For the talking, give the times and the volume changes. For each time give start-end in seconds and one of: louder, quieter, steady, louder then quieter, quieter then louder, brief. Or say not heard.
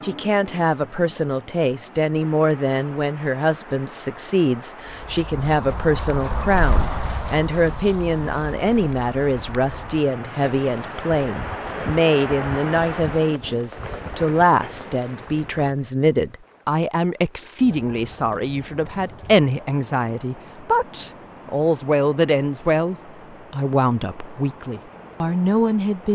0.0-26.1 steady.